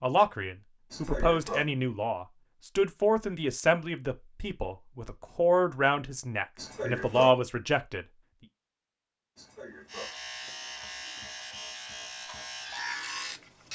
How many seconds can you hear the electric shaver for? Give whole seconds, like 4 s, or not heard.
4 s.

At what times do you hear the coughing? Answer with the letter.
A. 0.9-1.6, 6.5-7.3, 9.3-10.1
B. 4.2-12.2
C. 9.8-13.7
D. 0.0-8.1
A.